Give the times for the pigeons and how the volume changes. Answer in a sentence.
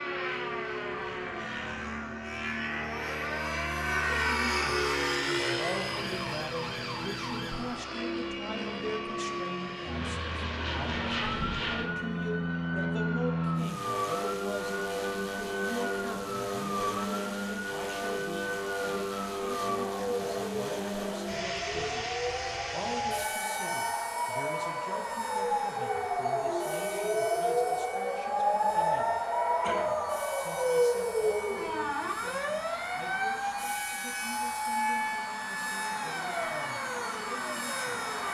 The pigeons can't be heard in this clip.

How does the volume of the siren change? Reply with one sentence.
The loudness of the siren goes up.